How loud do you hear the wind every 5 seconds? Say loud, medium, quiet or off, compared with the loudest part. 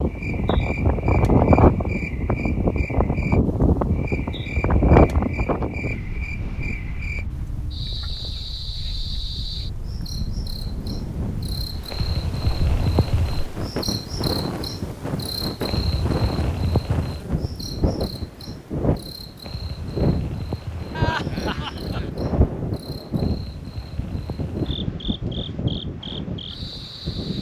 loud, medium, medium, medium, medium, medium.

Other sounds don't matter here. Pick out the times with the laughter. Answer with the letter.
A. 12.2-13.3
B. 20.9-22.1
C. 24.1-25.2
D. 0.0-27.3
B.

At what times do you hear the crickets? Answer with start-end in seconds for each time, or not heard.
0.0-27.3.